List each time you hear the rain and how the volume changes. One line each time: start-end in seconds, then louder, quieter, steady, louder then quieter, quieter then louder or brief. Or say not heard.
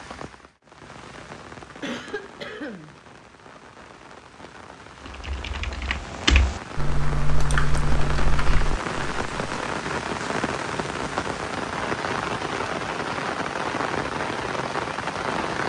0.0-15.6 louder.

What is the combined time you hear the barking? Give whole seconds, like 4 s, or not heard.
not heard.